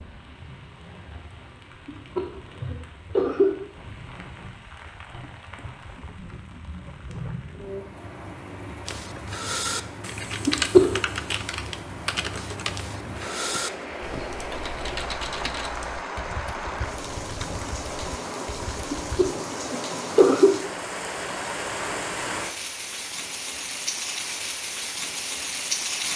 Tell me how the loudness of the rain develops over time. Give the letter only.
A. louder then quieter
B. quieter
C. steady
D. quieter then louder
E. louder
E.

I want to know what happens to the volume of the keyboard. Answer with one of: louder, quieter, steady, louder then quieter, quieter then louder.
quieter.